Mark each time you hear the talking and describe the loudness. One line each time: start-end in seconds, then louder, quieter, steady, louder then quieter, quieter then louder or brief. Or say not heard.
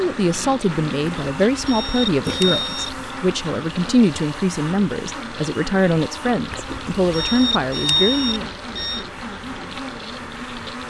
0.0-8.4 steady.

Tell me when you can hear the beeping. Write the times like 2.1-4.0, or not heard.
1.0-2.9, 6.5-9.1.